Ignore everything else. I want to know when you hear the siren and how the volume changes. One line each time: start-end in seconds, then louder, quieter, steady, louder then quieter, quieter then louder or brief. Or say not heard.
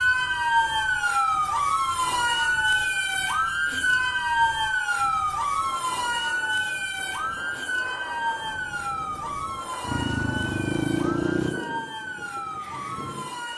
0.0-13.5 quieter.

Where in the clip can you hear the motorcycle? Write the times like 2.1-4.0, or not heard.
9.8-11.6.